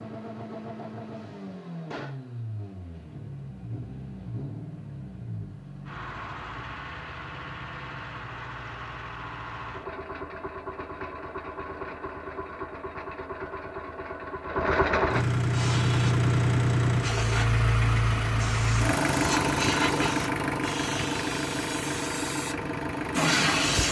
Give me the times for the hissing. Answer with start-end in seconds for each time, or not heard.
15.5-23.8.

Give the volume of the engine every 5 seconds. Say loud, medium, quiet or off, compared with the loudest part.
quiet, quiet, medium, loud, medium.